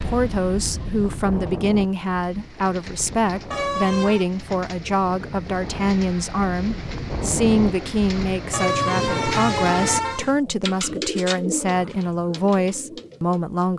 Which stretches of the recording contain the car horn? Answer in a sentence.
You can hear the car horn from 3.5 to 4.3 s and from 8.5 to 10.3 s.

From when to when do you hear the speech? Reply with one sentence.
The speech can be heard from 0.0 to 13.7 s.